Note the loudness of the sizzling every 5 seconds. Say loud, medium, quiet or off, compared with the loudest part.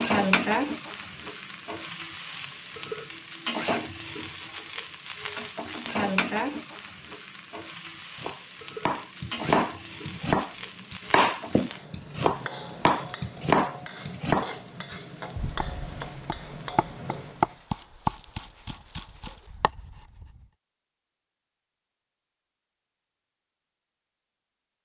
loud, loud, medium, medium, off.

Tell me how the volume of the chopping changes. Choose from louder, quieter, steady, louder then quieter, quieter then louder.
quieter.